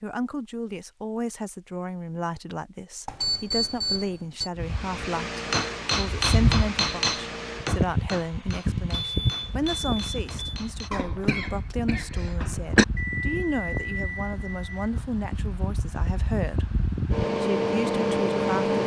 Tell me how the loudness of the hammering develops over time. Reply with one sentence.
The volume of the hammering goes down.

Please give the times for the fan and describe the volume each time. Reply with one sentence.
You can hear the fan from 4.5 to 18.8 s, getting quieter then louder.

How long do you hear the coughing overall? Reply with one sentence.
The coughing can be heard for 2 seconds in total.